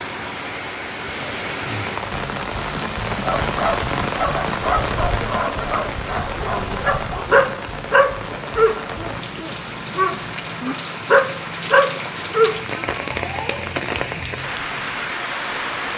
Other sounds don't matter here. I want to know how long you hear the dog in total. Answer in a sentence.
You can hear the dog for 10 seconds altogether.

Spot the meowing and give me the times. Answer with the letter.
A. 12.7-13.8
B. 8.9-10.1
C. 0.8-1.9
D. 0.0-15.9
A.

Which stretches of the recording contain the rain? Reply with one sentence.
The rain can be heard from 0.0 to 15.9 s.